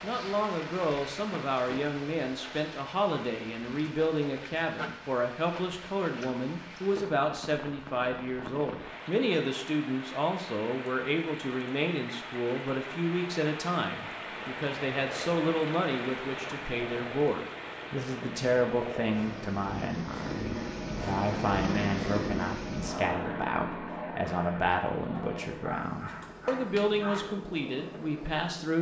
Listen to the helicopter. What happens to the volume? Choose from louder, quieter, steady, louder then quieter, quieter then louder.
louder then quieter.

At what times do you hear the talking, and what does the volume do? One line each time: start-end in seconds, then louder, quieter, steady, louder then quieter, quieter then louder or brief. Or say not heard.
0.0-28.7 steady.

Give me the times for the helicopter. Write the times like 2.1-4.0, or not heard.
14.2-28.7.